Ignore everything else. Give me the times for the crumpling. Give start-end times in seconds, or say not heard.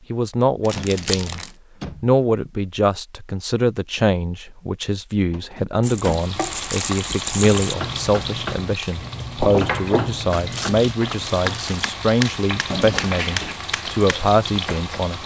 0.6-1.5, 5.8-7.8, 10.3-11.9.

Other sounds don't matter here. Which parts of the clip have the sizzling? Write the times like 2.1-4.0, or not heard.
5.9-15.2.